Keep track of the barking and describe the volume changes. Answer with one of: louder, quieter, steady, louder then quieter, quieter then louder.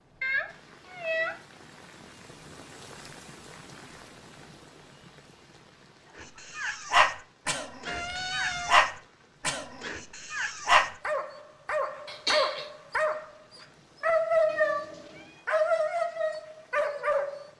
steady.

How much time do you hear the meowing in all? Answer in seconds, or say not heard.
3 s.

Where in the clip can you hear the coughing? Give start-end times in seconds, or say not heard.
12.1-12.7.